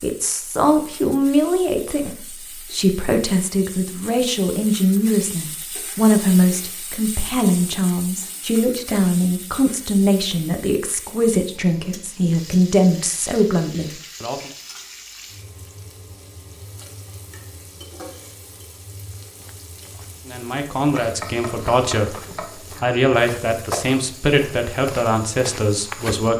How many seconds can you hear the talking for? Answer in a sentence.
You can hear the talking for 20 seconds altogether.